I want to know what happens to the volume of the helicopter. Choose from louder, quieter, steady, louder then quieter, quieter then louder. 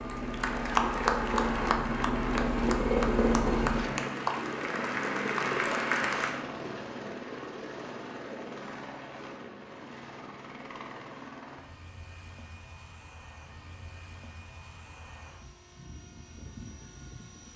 quieter.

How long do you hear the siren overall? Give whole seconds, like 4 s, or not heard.
not heard.